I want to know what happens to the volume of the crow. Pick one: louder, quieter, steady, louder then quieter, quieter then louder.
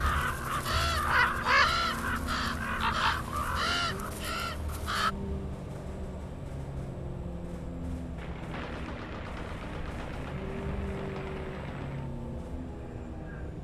quieter.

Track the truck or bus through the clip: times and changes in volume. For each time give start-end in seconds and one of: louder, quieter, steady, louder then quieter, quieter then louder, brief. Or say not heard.
0.0-13.5 steady.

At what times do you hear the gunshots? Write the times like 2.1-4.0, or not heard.
8.2-12.1.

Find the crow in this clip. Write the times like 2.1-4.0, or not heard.
0.0-5.1.